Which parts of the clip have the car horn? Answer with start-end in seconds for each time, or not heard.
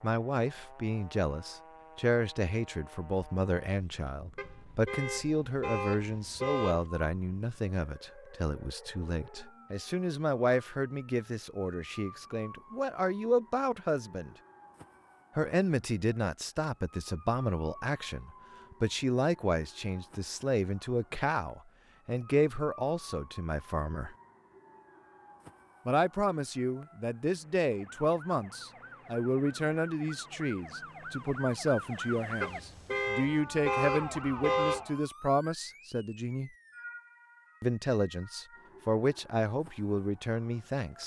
4.3-6.9, 32.4-34.9.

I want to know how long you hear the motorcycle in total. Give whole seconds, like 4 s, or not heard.
not heard.